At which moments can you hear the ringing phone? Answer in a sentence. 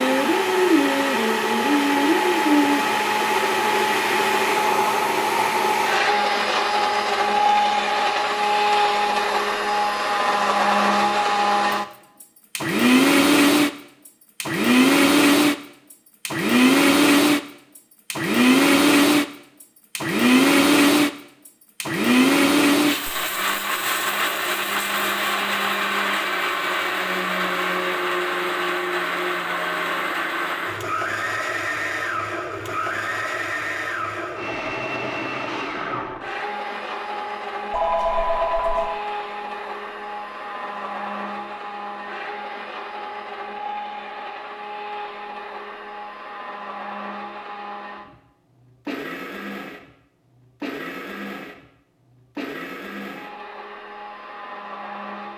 The ringing phone can be heard from 37.7 to 38.9 s.